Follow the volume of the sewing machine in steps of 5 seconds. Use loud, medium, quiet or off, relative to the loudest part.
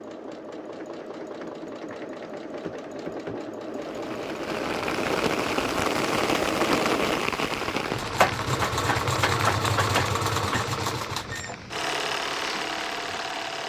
medium, loud, loud.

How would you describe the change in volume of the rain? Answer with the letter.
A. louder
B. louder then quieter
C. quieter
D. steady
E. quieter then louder
C.